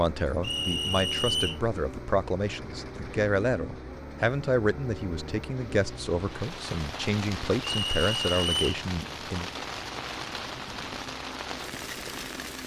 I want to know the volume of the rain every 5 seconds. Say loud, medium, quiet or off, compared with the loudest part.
off, loud, loud.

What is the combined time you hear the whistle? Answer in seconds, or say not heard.
2 s.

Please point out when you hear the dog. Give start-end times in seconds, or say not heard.
not heard.